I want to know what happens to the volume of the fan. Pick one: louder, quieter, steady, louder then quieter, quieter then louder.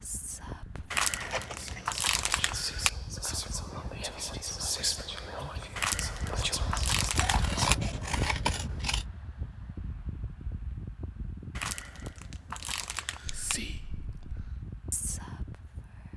louder then quieter.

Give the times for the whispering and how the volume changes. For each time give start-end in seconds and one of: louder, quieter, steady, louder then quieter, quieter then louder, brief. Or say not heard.
0.0-7.7 louder
13.2-16.1 brief.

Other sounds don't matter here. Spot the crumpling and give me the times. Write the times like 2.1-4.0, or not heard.
0.9-2.9, 5.8-7.8, 11.6-13.6.